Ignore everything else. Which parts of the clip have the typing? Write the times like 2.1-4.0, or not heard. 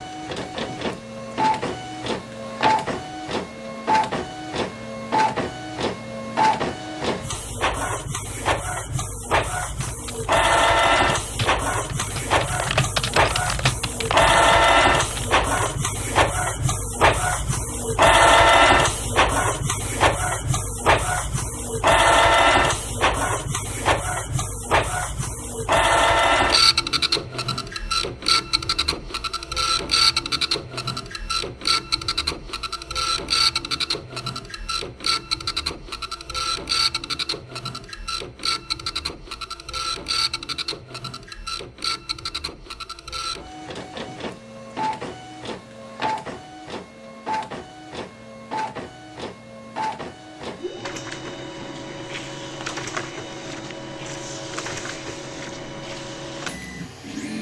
9.8-15.9.